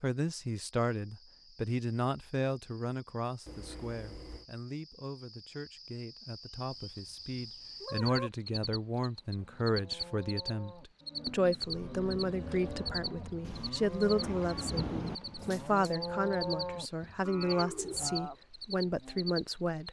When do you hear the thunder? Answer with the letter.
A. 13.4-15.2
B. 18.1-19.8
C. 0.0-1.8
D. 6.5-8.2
A.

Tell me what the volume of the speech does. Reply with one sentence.
The loudness of the speech goes down, then up.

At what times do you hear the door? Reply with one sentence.
The door can't be heard in this clip.